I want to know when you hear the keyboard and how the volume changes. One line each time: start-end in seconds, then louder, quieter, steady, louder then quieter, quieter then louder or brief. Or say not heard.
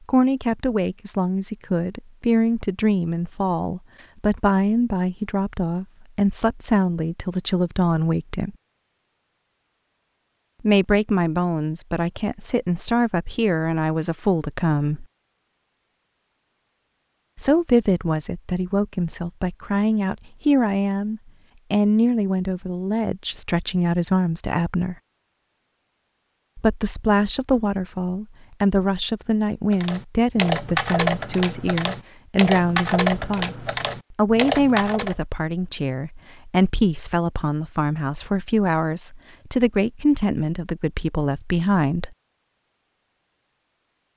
29.7-35.1 steady.